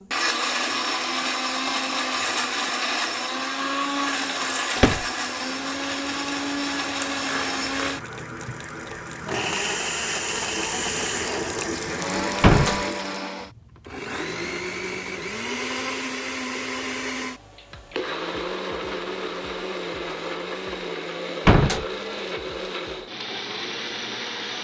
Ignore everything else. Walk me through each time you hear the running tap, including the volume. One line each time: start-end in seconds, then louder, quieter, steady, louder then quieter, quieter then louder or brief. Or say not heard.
5.3-13.3 louder.